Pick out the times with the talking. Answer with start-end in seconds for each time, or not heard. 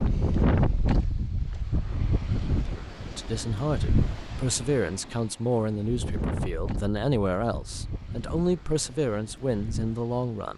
3.1-10.5.